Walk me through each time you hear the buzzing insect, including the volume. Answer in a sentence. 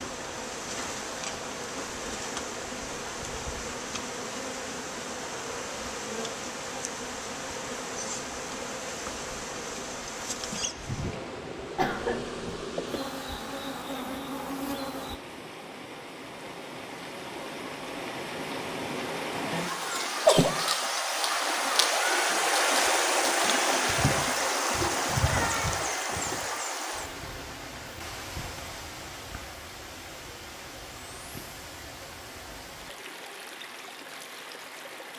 The buzzing insect can be heard from 0.0 to 15.2 s, at a steady volume.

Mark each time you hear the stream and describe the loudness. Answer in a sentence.
The stream can be heard from 0.0 to 35.1 s, getting louder then quieter.